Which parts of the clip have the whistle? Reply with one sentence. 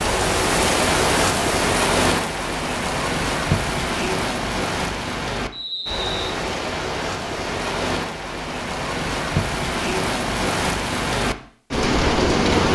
The whistle can be heard from 5.5 to 6.4 s.